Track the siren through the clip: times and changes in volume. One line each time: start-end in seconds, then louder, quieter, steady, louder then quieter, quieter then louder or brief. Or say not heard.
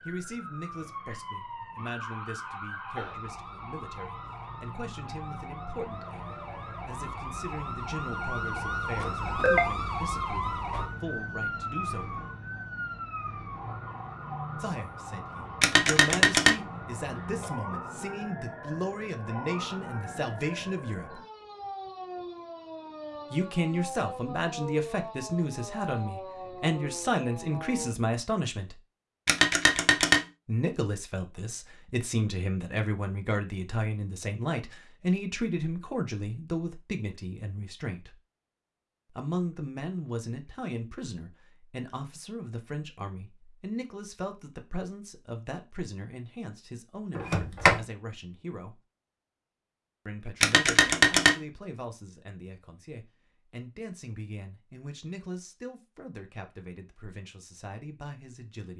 0.0-27.9 louder then quieter.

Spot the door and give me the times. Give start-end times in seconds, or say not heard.
47.1-47.8.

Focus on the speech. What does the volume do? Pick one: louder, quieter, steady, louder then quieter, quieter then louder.
louder then quieter.